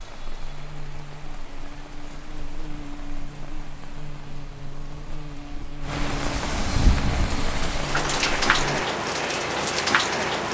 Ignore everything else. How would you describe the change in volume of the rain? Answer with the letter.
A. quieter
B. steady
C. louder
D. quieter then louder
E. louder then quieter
C.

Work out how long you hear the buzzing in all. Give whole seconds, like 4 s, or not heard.
9 s.